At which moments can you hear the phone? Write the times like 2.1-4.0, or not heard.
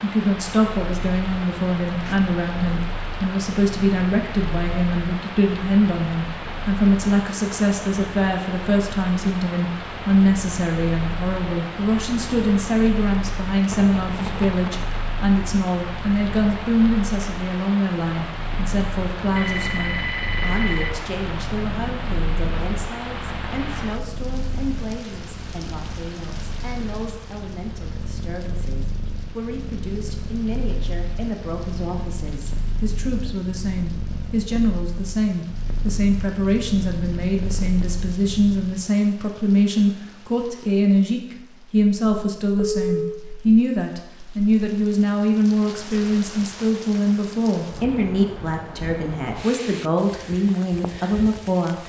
13.7-14.8, 19.4-20.9, 42.5-43.2.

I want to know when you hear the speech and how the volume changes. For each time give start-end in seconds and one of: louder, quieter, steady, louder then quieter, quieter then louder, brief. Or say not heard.
0.0-51.8 quieter then louder.